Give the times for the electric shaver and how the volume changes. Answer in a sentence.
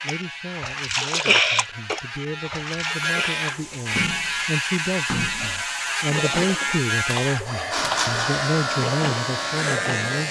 The electric shaver can be heard from 0.0 to 10.2 s, getting louder.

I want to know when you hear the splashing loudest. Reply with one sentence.
The loudest moment of the splashing is at 1 second.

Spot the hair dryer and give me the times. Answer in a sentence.
You can hear the hair dryer from 3.5 to 10.2 s.